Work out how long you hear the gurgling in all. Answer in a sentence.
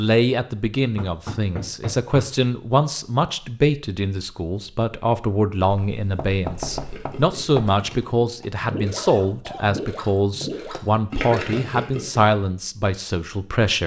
You can hear the gurgling for 6 seconds altogether.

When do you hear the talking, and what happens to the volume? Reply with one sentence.
You can hear the talking from 0.0 to 13.8 s, at a steady volume.